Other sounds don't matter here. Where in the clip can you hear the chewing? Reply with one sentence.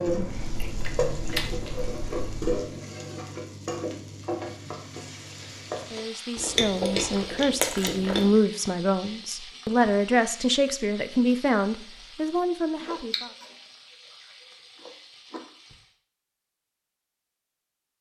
You can hear the chewing from 0.1 to 2.6 s, from 6.3 to 8.3 s, from 12.8 to 13.4 s and from 14.8 to 15.4 s.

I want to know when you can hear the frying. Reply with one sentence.
You can hear the frying from 0.0 to 15.9 s.